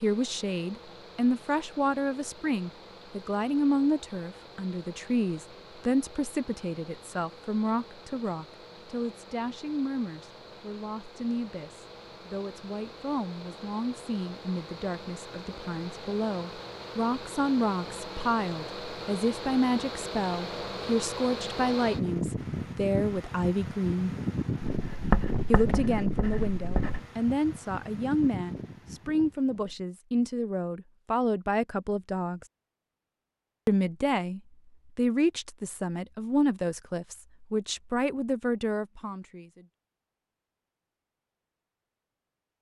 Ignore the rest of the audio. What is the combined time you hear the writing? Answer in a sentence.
You can hear the writing for 2 seconds altogether.